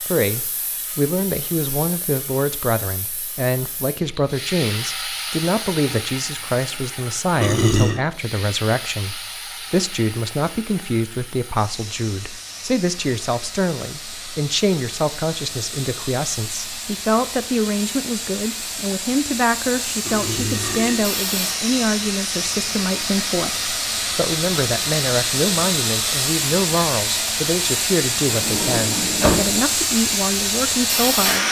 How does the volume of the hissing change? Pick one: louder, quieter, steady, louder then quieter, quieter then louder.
louder.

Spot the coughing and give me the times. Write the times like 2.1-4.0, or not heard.
not heard.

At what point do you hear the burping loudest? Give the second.
8 s.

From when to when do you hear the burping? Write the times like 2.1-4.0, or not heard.
7.4-8.0, 20.0-21.1.